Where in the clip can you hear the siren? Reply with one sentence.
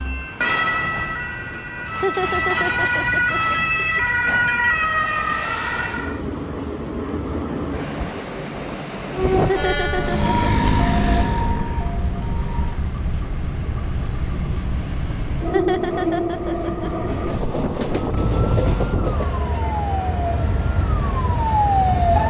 You can hear the siren from 0.0 to 6.2 s, from 9.9 to 12.8 s and from 17.9 to 22.2 s.